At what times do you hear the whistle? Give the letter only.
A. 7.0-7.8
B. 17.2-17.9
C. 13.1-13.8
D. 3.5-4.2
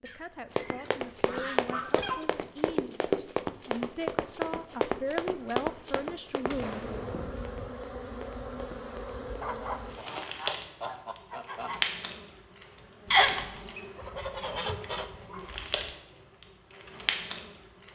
C.